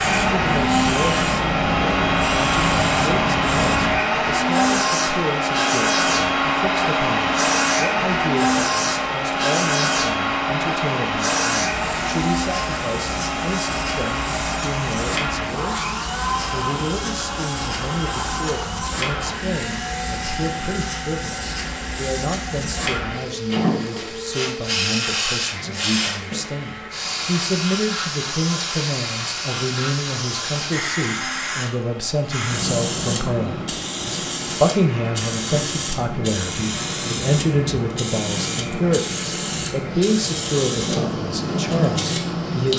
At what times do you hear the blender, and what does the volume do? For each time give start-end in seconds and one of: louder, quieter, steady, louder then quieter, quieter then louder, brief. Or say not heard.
0.0-42.7 quieter.